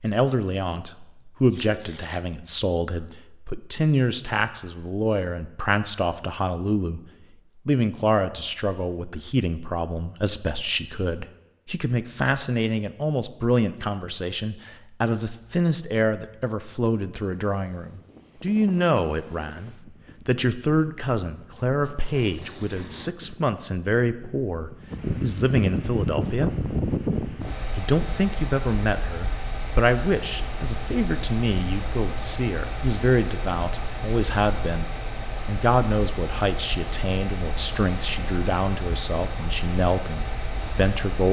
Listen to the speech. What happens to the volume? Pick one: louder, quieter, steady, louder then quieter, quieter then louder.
steady.